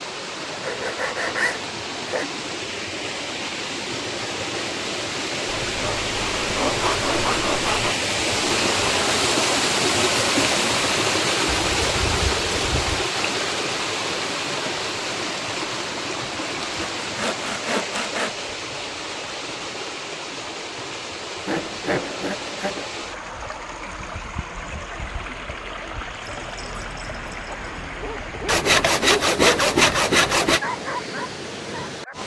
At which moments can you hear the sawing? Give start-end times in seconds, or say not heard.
0.5-2.2, 5.6-8.0, 11.5-13.1, 16.8-18.3, 21.4-22.9, 28.4-30.6.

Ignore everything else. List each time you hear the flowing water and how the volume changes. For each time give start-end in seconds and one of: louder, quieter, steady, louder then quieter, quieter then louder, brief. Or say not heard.
0.0-32.2 louder then quieter.